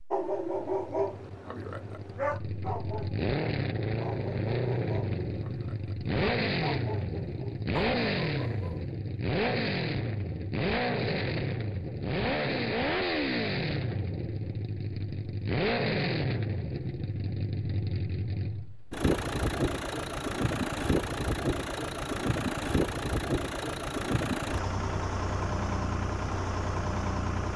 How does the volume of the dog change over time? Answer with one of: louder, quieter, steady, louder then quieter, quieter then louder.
quieter.